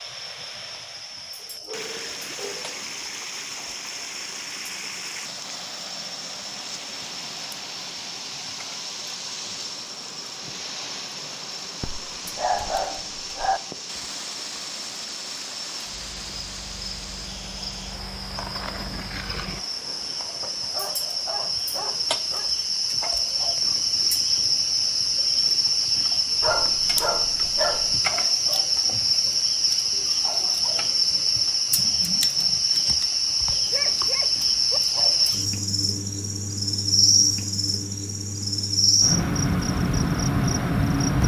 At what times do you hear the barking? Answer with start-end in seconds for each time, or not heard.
1.4-3.2, 11.8-13.6, 20.4-22.5, 26.4-28.0, 33.7-34.8.